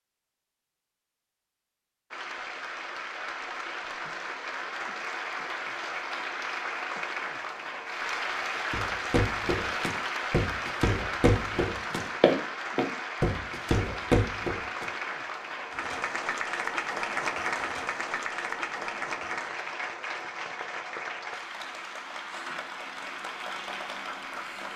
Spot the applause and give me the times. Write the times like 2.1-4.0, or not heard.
2.1-24.7.